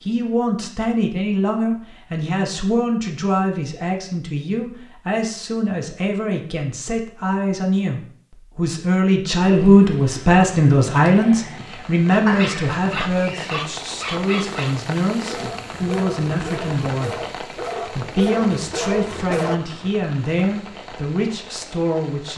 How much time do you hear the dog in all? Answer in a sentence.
You can hear the dog for 7 seconds altogether.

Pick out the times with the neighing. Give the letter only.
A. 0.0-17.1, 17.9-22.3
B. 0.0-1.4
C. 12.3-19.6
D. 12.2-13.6
D.